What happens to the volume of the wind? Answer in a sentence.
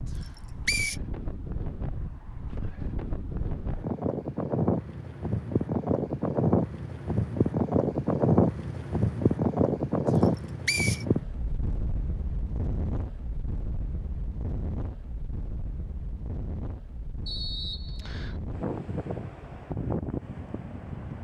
The loudness of the wind goes up, then down.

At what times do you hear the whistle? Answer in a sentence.
The whistle can be heard from 0.1 to 0.9 s, from 10.2 to 11.1 s and from 17.2 to 18.4 s.